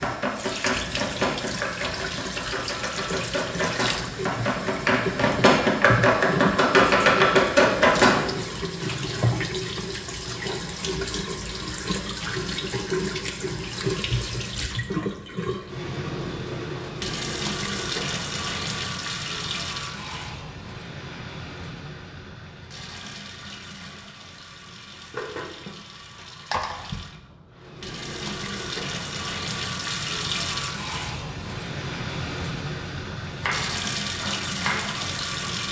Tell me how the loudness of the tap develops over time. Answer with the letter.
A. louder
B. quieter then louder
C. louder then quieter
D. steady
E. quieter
B.